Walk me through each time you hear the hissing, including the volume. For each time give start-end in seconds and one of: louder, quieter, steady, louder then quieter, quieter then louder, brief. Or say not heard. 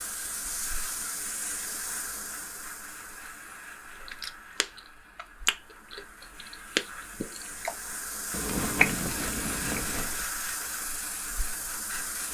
0.0-12.2 quieter then louder.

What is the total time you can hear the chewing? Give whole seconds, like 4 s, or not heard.
6 s.